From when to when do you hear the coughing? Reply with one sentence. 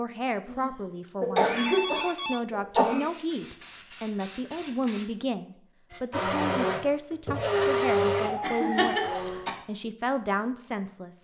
You can hear the coughing from 0.5 to 3.1 s and from 8.4 to 9.5 s.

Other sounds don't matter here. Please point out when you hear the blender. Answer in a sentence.
You can hear the blender from 5.9 to 9.4 s.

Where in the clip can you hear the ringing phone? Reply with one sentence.
The ringing phone can be heard from 1.1 to 2.4 s and from 8.4 to 9.5 s.